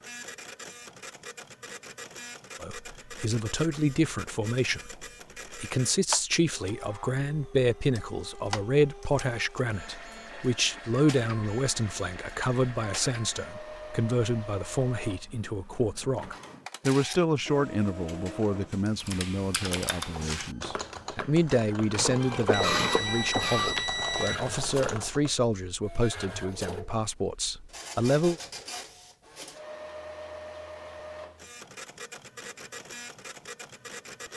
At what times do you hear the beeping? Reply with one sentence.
You can hear the beeping from 22.5 to 24.5 s.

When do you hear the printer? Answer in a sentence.
The printer can be heard from 0.0 to 34.3 s.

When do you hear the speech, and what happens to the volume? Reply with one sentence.
You can hear the speech from 2.6 to 28.4 s, at a steady volume.